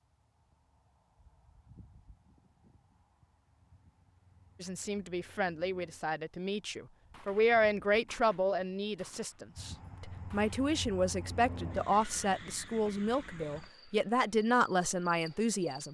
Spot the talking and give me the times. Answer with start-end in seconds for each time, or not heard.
4.6-15.8.